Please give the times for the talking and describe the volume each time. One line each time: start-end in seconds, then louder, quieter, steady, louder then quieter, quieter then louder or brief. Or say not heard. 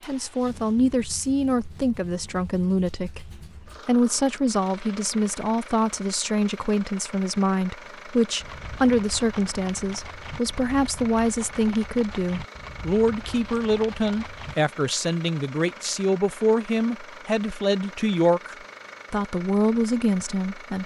0.1-20.8 steady.